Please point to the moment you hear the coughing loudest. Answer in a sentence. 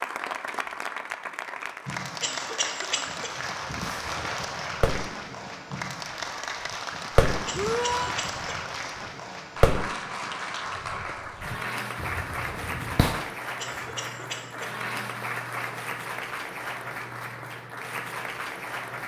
The volume of the coughing peaks at 3 seconds.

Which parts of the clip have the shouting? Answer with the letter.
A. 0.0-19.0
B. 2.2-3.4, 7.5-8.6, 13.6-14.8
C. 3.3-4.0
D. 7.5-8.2
D.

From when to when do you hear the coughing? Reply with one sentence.
The coughing can be heard from 2.2 to 3.4 s, from 7.5 to 8.6 s and from 13.6 to 14.8 s.